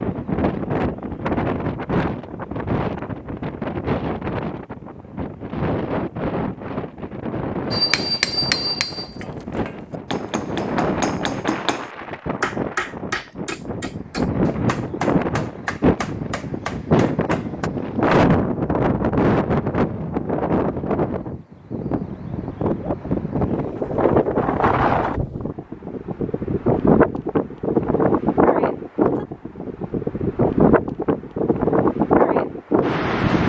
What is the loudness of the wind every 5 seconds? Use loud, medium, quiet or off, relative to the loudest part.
medium, medium, medium, loud, loud, loud, loud.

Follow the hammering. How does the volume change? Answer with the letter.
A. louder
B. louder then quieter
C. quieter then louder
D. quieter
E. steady
D.